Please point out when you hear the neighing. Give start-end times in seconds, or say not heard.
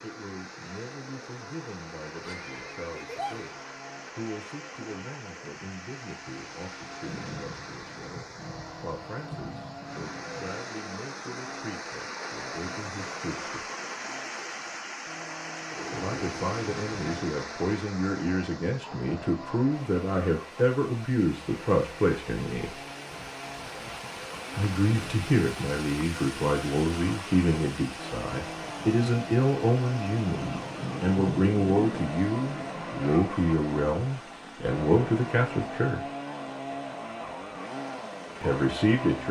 2.2-3.5.